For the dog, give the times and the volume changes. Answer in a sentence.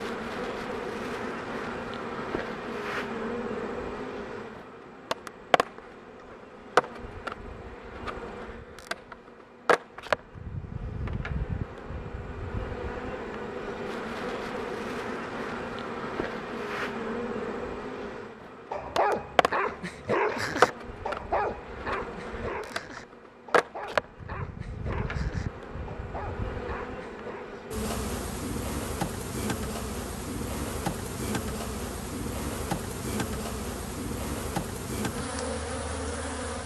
You can hear the dog from 18.7 to 27.6 s, getting quieter.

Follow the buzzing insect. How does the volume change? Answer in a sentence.
The loudness of the buzzing insect stays about the same.